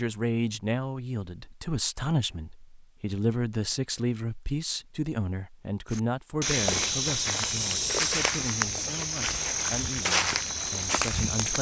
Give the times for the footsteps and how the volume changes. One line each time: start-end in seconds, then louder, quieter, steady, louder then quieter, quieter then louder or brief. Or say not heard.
5.9-11.5 steady.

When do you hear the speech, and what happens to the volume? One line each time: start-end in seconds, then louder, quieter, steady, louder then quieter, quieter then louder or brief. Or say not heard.
0.0-11.5 quieter.